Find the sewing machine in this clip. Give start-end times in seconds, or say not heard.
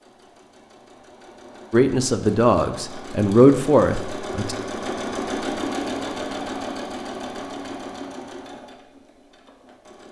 0.0-10.0.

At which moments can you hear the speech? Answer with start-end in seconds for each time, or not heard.
1.7-4.5.